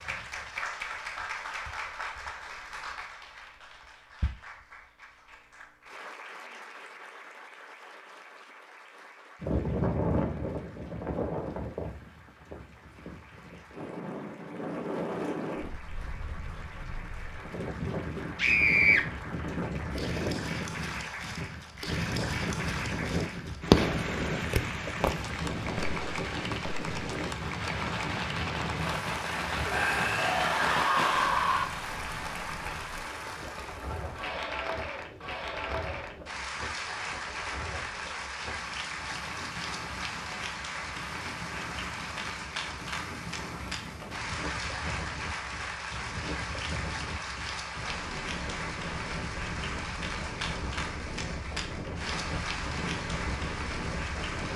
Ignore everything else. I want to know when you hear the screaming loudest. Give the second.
19 s.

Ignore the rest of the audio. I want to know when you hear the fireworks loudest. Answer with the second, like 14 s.
24 s.